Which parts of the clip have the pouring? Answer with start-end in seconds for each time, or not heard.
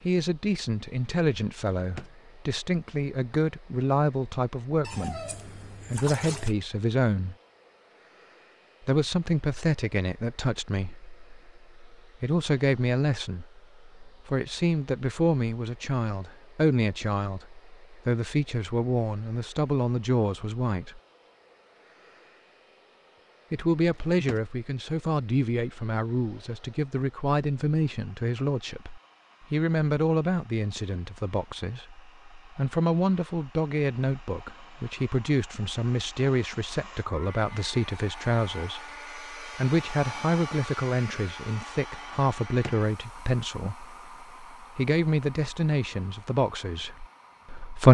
4.8-6.5.